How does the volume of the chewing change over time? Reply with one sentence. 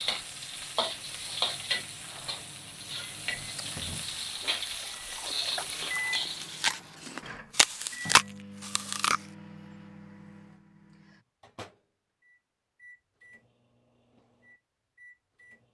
The volume of the chewing goes up.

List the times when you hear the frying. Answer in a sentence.
The frying can be heard from 0.0 to 6.7 s.